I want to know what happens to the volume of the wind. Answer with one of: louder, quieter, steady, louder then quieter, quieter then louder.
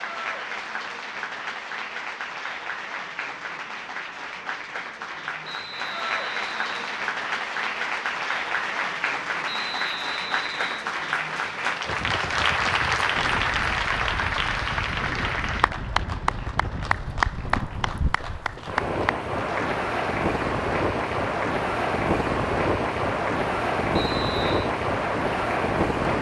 louder.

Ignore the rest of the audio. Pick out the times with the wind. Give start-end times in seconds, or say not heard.
11.8-26.1.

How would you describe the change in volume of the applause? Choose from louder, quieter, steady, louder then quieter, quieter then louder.
louder then quieter.